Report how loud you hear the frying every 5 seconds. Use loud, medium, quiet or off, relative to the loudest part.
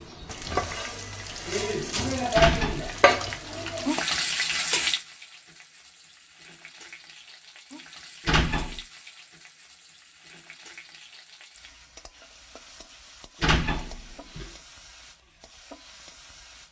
loud, quiet, quiet, quiet.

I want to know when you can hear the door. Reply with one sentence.
The door can be heard from 2.4 to 3.0 s, from 8.2 to 8.8 s and from 13.4 to 14.5 s.